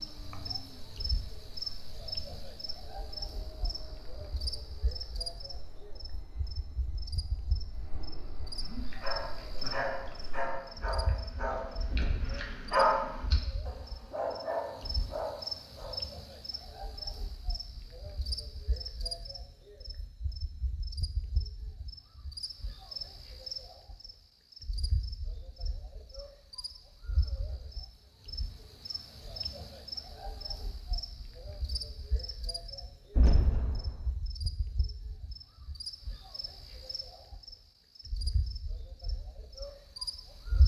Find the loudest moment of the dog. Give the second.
13 s.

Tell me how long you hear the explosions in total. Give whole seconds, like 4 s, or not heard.
2 s.